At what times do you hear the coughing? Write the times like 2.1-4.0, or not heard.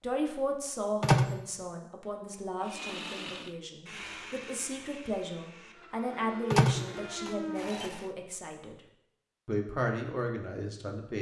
not heard.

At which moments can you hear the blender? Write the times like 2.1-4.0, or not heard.
2.6-8.2.